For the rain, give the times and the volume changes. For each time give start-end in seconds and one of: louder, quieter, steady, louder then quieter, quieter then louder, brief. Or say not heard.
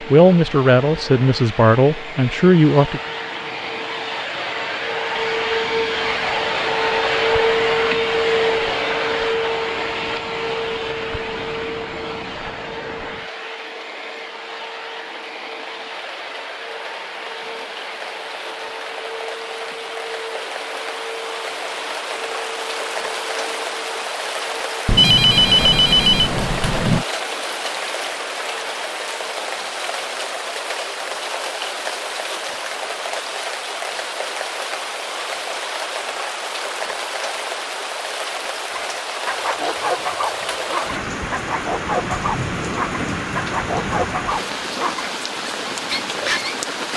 0.0-46.9 louder.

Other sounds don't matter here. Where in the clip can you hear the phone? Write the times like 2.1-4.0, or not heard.
5.1-6.0, 24.9-27.1.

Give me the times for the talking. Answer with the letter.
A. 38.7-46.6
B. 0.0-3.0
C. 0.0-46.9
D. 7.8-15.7
B.